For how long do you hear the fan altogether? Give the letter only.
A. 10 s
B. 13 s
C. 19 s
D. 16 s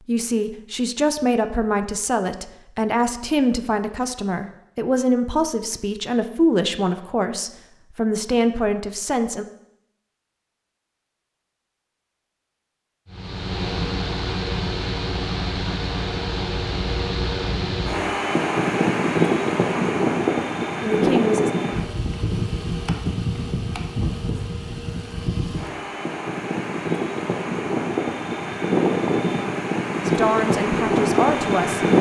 C.